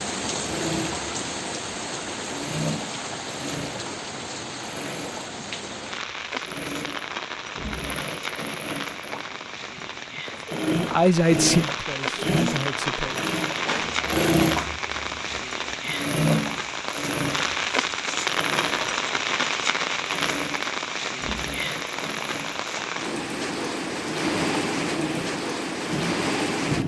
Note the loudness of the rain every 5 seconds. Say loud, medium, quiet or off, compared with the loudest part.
medium, medium, loud, loud, loud, loud.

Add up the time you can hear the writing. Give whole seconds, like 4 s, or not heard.
not heard.